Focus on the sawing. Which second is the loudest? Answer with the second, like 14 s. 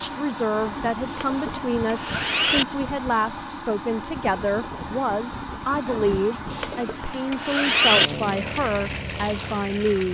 8 s.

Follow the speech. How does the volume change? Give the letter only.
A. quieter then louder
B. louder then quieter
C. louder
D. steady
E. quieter
D.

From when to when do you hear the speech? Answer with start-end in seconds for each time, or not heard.
0.0-10.0.